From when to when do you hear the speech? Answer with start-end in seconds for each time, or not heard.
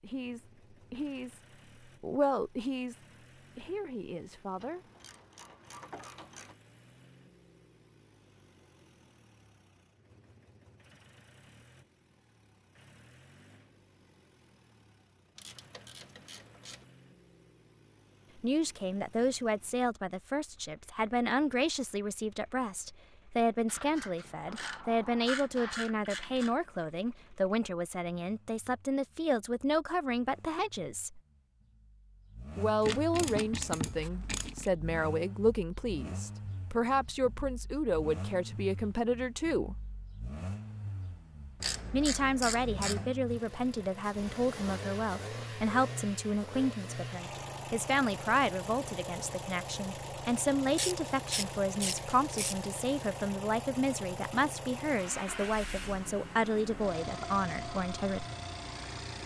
0.0-4.8, 18.4-31.2, 32.5-39.8, 41.9-58.2.